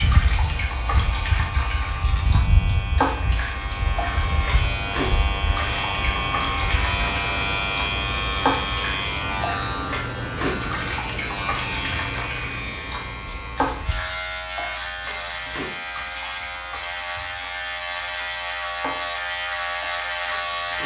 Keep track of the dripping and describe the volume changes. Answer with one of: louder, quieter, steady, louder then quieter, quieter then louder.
quieter.